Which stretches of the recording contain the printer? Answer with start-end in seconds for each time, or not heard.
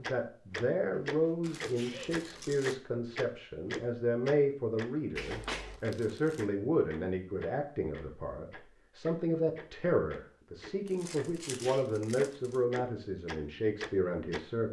not heard.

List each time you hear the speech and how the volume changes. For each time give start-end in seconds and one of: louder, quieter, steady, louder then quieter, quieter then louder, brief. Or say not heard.
0.0-14.6 steady.